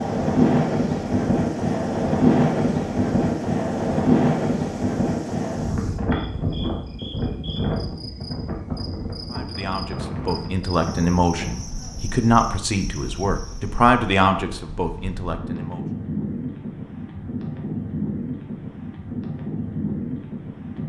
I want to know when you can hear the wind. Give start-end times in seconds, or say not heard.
0.0-20.8.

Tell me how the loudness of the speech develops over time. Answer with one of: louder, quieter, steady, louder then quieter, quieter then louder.
louder then quieter.